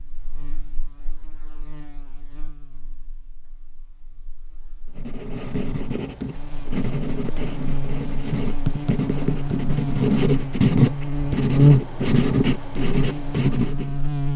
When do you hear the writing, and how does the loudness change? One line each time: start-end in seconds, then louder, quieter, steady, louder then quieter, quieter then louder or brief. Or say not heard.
5.0-13.9 louder.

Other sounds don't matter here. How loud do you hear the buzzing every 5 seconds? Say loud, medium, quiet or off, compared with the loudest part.
quiet, medium, loud.